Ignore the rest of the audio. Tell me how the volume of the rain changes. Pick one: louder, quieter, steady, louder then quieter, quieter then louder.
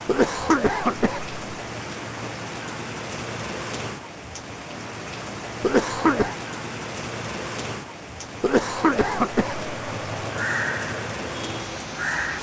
steady.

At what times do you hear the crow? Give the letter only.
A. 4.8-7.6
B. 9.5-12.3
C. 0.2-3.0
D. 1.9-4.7
B.